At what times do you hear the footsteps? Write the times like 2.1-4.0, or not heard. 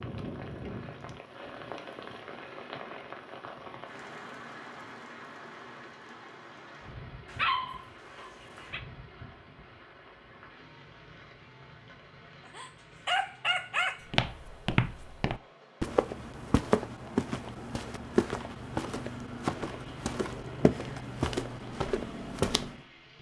14.1-22.8.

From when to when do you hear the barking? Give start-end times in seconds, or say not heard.
7.2-8.8, 12.4-14.0.